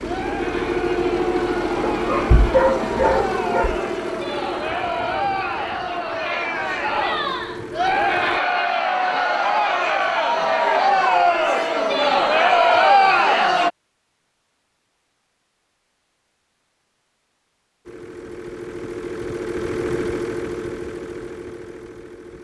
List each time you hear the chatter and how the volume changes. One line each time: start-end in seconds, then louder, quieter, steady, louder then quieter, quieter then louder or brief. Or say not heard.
0.0-13.7 louder.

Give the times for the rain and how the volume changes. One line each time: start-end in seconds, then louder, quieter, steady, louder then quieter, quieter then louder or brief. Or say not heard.
not heard.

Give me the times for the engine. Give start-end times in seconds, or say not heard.
0.0-8.4, 17.9-22.3.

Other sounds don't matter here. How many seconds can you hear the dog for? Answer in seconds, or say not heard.
2 s.